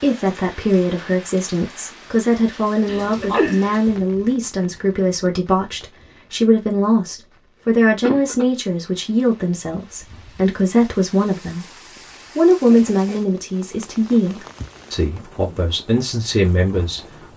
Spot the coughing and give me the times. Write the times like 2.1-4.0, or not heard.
2.9-3.8, 8.0-8.4, 12.5-13.2.